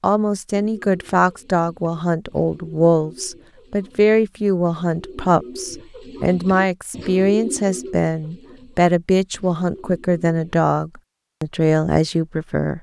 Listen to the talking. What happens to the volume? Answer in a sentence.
The loudness of the talking stays about the same.